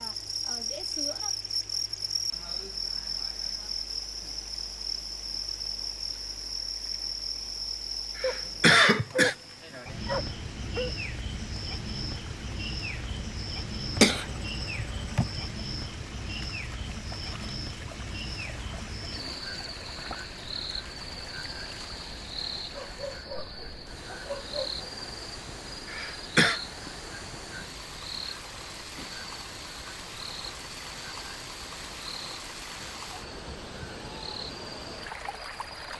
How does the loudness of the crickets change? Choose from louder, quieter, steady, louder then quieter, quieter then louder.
quieter.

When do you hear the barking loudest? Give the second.
9 s.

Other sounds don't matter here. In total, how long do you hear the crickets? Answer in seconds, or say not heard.
36 s.